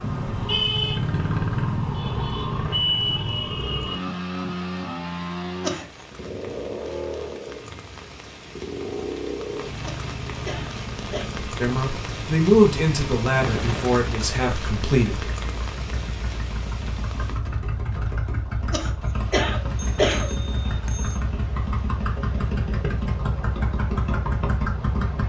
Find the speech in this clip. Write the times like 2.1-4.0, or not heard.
11.6-15.2.